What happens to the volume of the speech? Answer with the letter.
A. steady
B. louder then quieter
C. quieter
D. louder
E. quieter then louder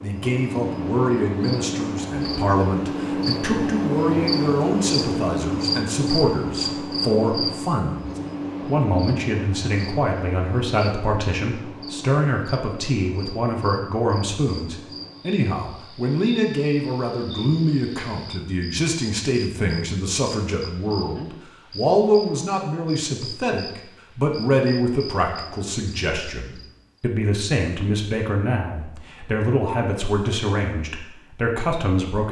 A.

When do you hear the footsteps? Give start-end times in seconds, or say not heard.
not heard.